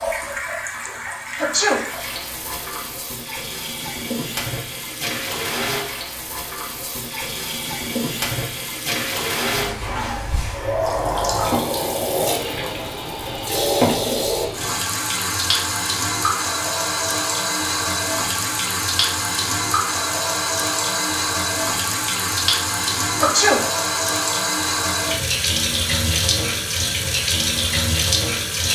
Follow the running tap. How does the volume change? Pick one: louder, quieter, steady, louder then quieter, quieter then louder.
louder.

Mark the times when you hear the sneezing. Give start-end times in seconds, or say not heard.
1.4-1.9, 23.1-23.6.